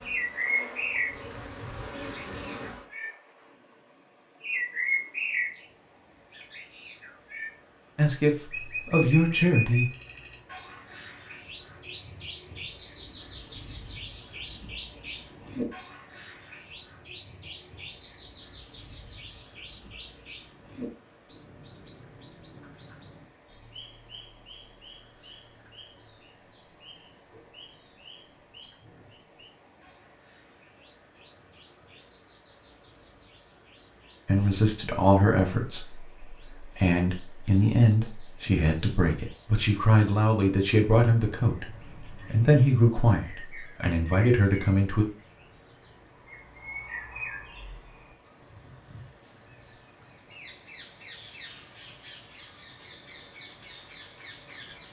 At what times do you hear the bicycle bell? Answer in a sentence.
You can hear the bicycle bell from 49.3 to 50.0 s.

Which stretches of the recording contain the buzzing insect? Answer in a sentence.
The buzzing insect can be heard from 0.0 to 2.9 s.